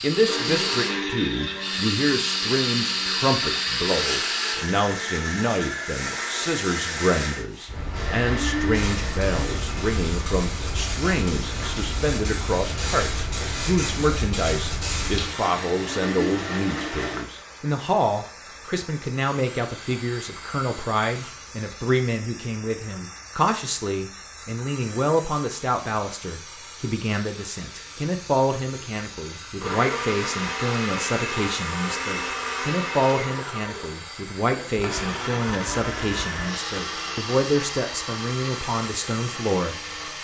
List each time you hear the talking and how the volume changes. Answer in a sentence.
The talking can be heard from 0.0 to 40.2 s, at a steady volume.